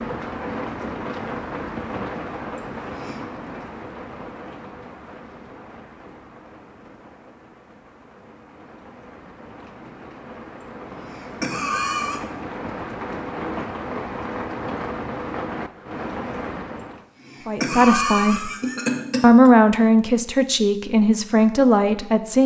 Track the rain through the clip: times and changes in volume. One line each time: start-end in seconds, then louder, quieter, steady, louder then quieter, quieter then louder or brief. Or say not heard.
0.0-17.1 quieter then louder.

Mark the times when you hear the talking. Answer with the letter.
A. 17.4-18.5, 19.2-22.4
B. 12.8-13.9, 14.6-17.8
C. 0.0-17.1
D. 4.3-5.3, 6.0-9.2
A.